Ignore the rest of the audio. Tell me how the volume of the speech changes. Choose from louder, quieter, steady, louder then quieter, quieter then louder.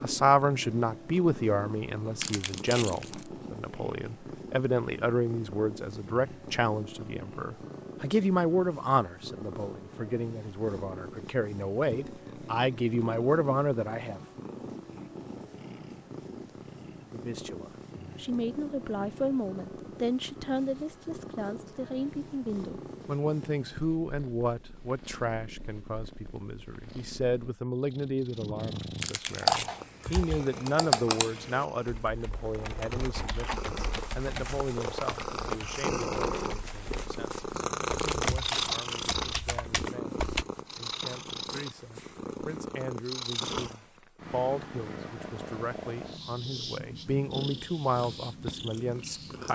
quieter.